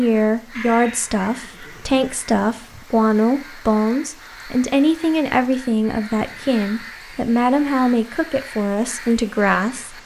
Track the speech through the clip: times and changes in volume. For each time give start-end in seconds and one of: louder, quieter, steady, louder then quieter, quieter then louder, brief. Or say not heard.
0.0-10.0 steady.